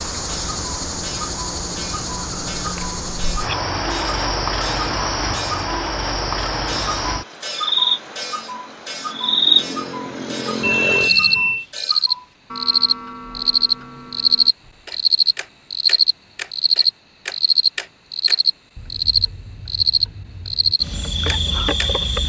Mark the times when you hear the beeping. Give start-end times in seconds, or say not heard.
10.6-11.7.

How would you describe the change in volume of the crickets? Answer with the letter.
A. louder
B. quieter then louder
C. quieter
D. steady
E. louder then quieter
A.